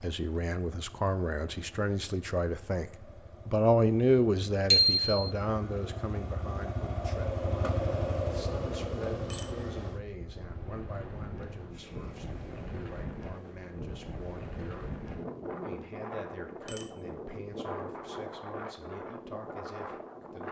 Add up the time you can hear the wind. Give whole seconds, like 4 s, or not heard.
10 s.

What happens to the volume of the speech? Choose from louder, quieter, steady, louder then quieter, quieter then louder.
quieter.